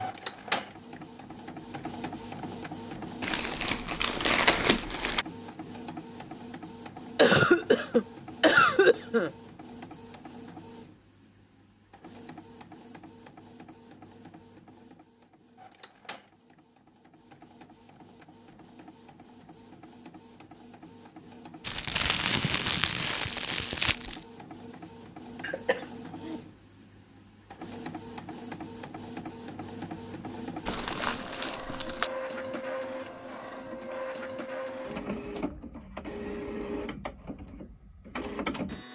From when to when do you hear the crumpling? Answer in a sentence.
The crumpling can be heard from 3.2 to 5.2 s, from 21.6 to 24.2 s and from 30.6 to 32.1 s.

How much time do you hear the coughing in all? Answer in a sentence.
The coughing can be heard for 3 seconds in total.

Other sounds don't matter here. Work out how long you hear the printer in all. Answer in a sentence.
You can hear the printer for 39 seconds altogether.